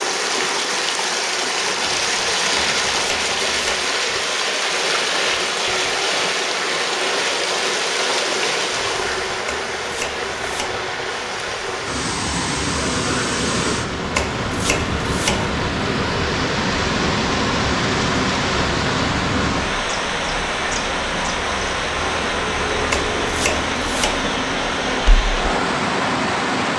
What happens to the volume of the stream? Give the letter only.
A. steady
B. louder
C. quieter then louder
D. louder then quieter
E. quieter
A.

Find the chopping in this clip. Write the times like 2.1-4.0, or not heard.
2.5-3.9, 9.4-10.8, 14.2-15.4, 22.9-24.2.